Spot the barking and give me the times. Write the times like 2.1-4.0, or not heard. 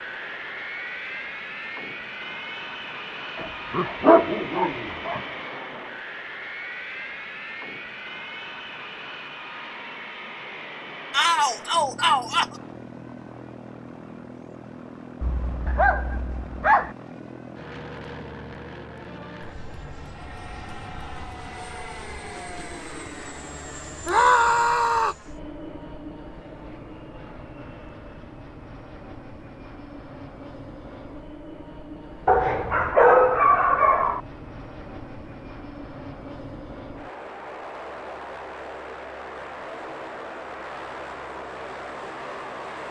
3.4-5.2, 15.2-16.9, 32.2-34.2.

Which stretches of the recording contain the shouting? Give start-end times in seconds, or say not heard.
11.1-12.4, 24.1-25.1.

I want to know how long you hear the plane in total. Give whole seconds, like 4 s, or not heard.
43 s.